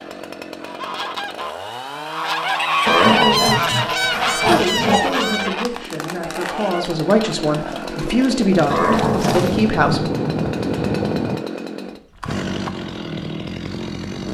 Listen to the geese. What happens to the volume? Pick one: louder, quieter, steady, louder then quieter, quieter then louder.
louder then quieter.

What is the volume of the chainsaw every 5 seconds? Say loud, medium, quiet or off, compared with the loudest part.
medium, loud, loud.